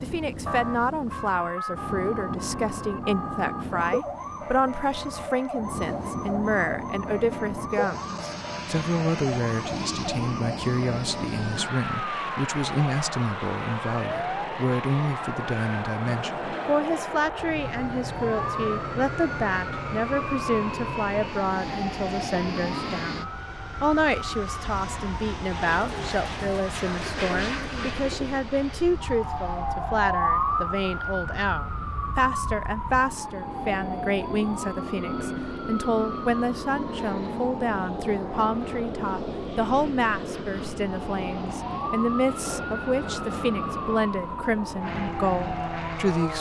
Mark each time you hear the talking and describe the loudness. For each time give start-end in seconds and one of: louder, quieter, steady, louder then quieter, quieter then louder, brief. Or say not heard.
0.0-46.3 steady.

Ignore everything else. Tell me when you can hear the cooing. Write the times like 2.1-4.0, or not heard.
25.6-28.5.